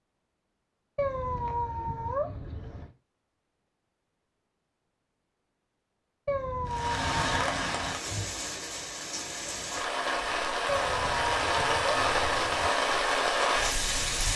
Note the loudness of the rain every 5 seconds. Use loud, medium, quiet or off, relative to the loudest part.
off, medium, loud.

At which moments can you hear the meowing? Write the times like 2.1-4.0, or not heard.
0.9-2.9, 6.2-7.5, 10.7-12.7.